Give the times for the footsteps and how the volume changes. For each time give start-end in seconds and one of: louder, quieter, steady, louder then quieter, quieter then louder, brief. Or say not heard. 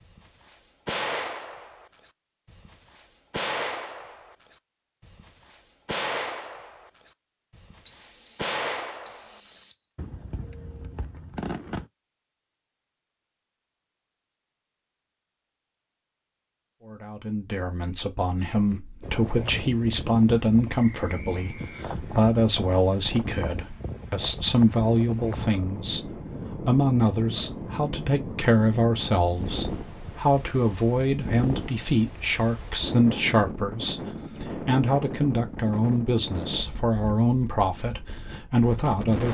not heard.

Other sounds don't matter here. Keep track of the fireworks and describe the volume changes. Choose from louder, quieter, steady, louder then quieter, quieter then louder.
quieter.